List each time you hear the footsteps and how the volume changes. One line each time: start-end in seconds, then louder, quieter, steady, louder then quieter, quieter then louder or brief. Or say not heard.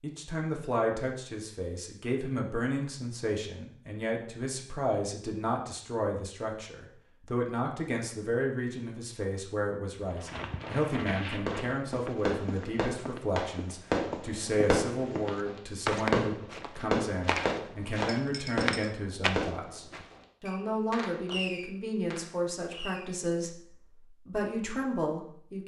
10.0-20.1 quieter then louder.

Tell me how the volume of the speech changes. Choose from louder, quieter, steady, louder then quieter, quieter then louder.
steady.